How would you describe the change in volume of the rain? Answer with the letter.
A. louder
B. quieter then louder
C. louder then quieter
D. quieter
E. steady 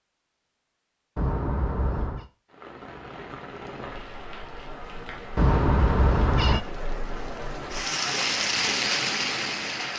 A.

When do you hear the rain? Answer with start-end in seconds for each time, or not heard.
2.5-9.9.